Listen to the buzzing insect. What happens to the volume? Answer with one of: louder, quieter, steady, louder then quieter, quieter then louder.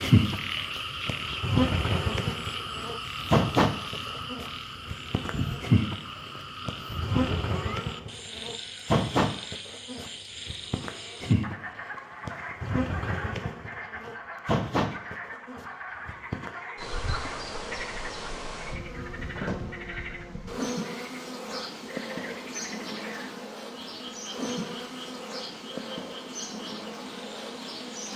quieter.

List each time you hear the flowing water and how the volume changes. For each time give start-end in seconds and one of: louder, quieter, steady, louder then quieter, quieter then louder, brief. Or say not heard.
not heard.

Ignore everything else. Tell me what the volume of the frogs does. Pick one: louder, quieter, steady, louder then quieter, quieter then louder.
quieter.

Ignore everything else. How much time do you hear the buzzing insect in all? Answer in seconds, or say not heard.
28 s.